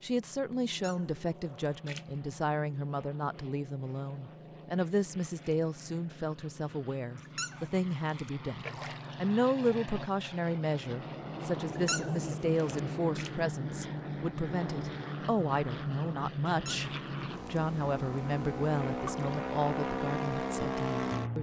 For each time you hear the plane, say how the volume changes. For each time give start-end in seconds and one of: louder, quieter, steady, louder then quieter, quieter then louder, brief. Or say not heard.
0.0-21.3 louder.